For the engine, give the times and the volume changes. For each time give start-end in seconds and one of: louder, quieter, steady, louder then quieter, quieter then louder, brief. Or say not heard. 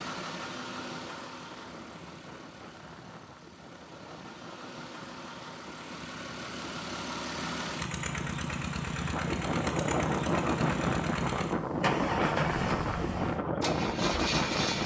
0.0-14.8 louder.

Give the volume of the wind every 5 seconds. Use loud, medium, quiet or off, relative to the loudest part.
quiet, medium, loud.